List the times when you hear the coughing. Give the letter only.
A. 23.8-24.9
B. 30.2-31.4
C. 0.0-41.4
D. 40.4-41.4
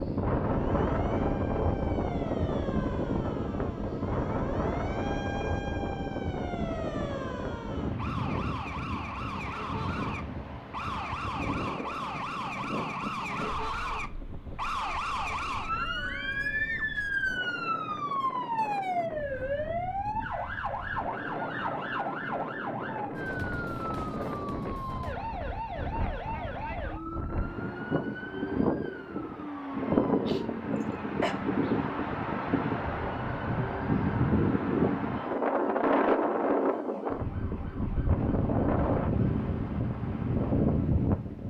B.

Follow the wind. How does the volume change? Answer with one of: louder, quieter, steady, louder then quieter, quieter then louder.
quieter then louder.